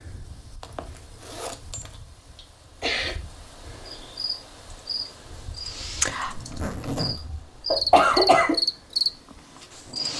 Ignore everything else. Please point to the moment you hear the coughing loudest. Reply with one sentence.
The loudest moment of the coughing is at 8 seconds.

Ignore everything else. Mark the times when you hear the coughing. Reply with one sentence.
The coughing can be heard from 2.4 to 3.1 s and from 7.2 to 8.6 s.